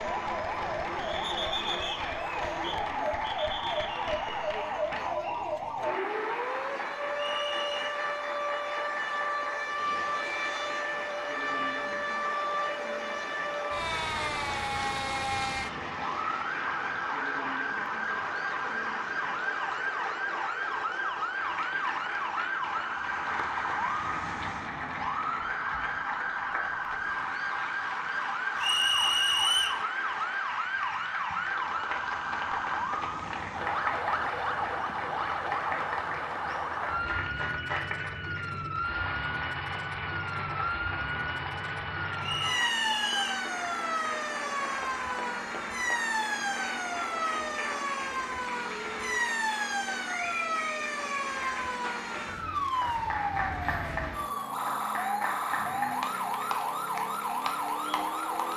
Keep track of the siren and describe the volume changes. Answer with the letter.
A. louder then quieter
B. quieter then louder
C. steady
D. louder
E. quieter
C.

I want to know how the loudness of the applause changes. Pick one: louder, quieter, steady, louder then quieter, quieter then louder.
steady.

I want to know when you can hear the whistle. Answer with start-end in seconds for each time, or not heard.
7.2-8.0, 28.6-29.8, 42.2-43.5.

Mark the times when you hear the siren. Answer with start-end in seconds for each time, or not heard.
0.0-58.5.